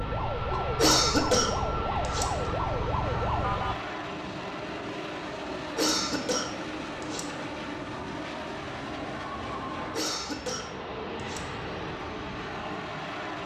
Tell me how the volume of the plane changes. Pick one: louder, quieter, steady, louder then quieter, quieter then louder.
steady.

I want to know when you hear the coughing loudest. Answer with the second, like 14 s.
1 s.